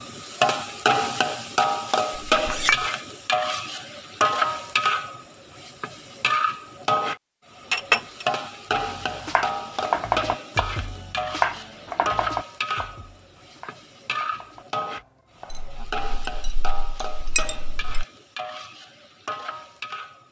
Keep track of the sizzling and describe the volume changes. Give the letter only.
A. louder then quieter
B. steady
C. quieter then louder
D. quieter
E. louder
D.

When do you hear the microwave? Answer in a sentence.
The microwave can't be heard in this clip.